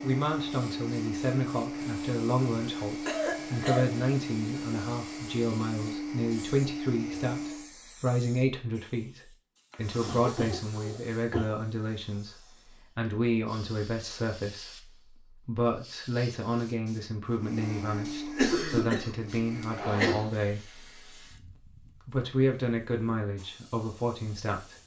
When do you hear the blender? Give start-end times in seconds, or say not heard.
0.0-7.7, 17.4-20.4.